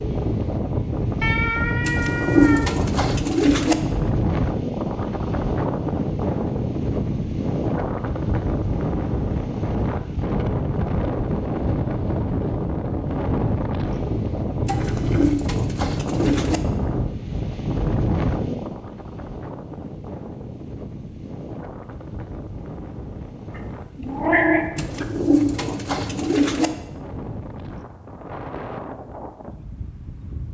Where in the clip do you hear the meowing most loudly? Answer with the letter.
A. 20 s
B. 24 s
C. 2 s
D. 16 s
B.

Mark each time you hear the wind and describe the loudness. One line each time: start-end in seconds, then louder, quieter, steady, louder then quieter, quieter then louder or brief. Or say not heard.
0.0-30.4 quieter.